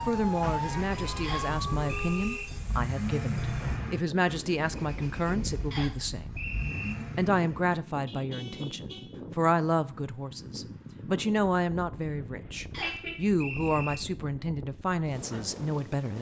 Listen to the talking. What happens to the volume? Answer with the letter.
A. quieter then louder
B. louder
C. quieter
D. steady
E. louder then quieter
D.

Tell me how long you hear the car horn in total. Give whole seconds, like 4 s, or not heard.
4 s.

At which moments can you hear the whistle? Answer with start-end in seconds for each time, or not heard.
1.2-2.5, 5.7-7.0, 12.7-14.0.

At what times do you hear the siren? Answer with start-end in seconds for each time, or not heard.
0.0-2.1.